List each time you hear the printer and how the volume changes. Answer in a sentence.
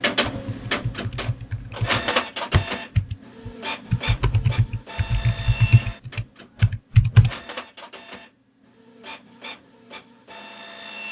You can hear the printer from 0.0 to 11.0 s, getting quieter.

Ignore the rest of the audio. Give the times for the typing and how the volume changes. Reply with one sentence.
The typing can be heard from 0.2 to 7.3 s, getting louder.